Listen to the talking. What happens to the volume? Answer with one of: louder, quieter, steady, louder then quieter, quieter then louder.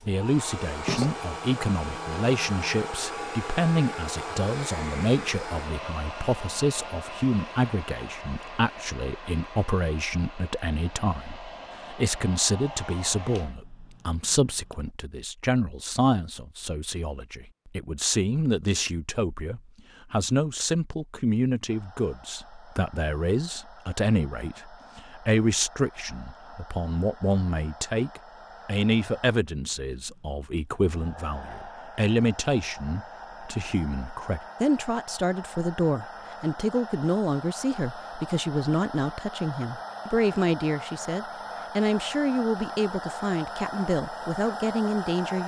steady.